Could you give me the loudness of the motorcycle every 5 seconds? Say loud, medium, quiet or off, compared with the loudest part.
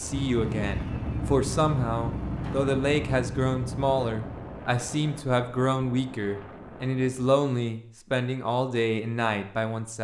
loud, off.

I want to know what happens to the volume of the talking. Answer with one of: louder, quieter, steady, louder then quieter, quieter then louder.
steady.